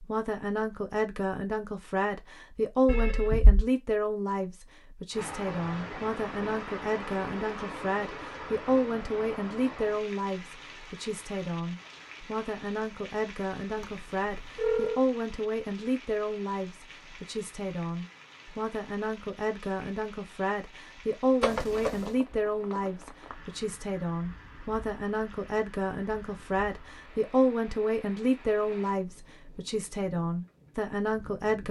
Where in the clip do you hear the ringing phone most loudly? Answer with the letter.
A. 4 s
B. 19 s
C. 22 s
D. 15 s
D.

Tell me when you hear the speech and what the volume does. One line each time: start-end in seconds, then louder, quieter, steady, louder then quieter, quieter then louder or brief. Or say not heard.
0.0-31.6 steady.